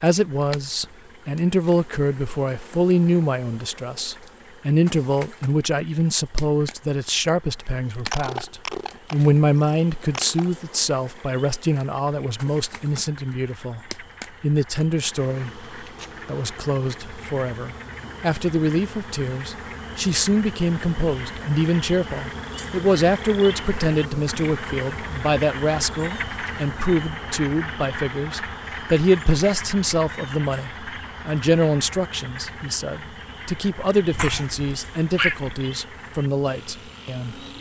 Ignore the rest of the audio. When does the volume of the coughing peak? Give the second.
35 s.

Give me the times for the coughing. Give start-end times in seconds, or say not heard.
8.1-10.5, 34.1-35.5.